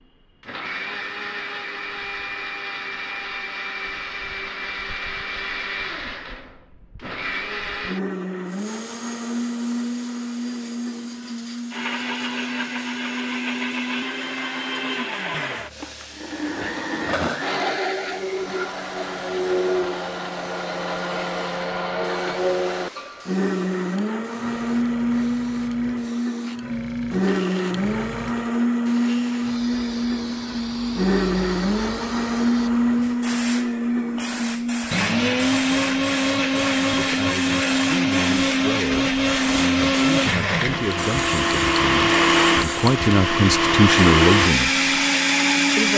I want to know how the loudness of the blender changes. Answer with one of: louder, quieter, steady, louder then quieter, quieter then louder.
louder.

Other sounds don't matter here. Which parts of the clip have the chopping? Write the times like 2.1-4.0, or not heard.
not heard.